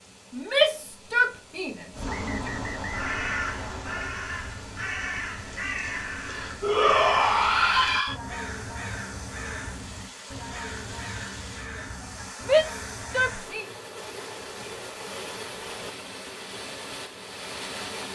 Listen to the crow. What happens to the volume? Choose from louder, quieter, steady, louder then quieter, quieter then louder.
quieter.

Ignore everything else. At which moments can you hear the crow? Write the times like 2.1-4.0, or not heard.
1.9-13.4.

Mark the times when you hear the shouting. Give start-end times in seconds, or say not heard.
0.3-2.5, 6.6-8.2, 12.4-13.7.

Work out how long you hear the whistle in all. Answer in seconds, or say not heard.
2 s.